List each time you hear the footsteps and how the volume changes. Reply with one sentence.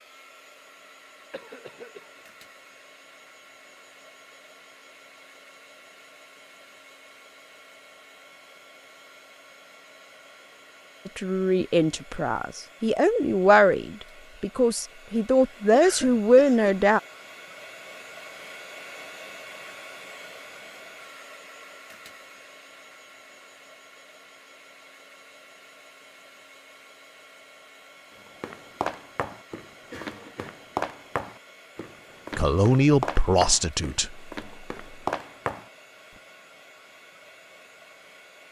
You can hear the footsteps from 28.2 to 36.2 s, getting quieter then louder.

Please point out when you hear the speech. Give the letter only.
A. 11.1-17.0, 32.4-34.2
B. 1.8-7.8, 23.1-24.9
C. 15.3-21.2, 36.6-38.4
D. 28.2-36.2
A.